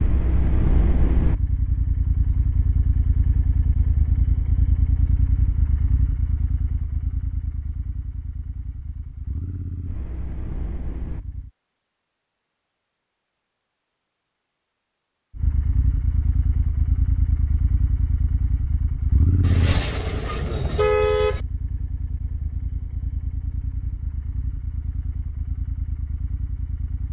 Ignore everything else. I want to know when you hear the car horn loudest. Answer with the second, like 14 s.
21 s.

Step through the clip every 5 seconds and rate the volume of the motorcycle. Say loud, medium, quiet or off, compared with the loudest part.
loud, medium, medium, loud, medium, medium.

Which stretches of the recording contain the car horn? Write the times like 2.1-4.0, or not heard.
19.4-21.4.